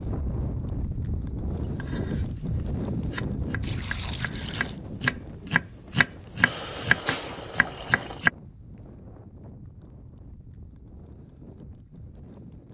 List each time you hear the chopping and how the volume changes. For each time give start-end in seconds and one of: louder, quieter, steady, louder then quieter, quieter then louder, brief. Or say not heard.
1.5-8.3 louder.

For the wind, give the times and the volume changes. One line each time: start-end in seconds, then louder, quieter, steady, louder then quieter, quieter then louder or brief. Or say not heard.
0.0-12.6 quieter.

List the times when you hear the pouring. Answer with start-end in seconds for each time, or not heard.
3.6-4.8, 6.5-8.2.